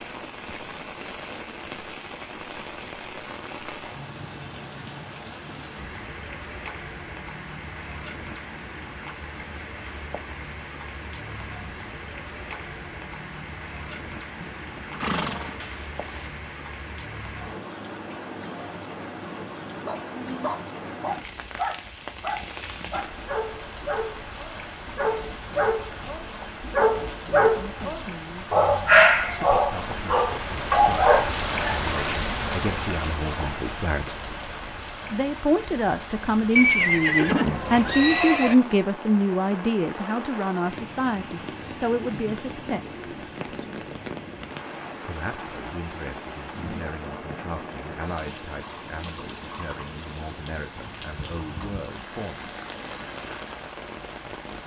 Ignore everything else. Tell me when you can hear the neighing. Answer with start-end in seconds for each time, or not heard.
14.4-16.3, 36.5-38.5.